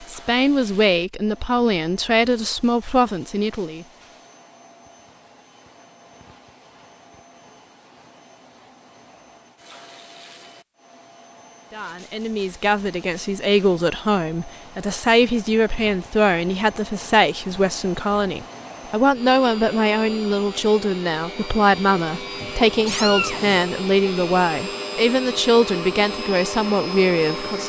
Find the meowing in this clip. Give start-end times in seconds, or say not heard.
22.4-23.7.